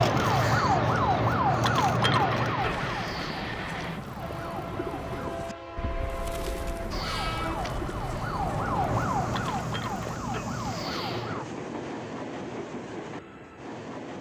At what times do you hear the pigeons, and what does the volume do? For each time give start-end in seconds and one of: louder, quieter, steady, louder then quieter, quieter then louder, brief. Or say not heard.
2.6-10.2 steady.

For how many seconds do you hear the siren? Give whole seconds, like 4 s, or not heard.
10 s.